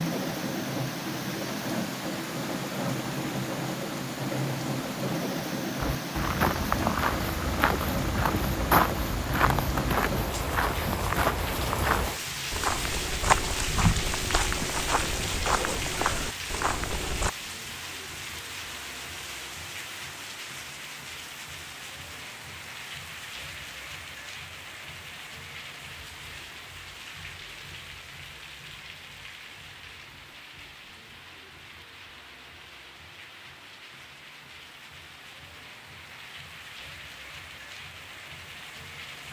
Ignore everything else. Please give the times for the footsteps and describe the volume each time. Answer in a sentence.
You can hear the footsteps from 5.8 to 17.3 s, at a steady volume.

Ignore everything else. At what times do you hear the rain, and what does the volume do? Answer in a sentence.
You can hear the rain from 0.0 to 39.2 s, getting quieter.